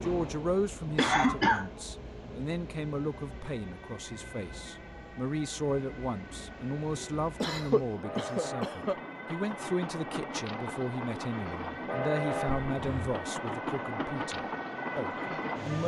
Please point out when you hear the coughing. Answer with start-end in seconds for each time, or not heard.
0.9-1.6, 7.4-8.9, 12.7-13.2.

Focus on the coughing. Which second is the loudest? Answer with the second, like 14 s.
1 s.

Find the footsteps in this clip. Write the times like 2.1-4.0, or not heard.
not heard.